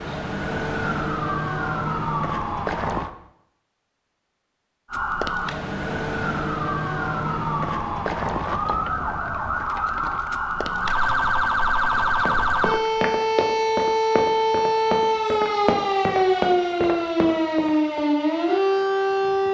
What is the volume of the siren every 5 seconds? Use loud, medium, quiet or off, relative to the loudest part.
medium, medium, loud, loud.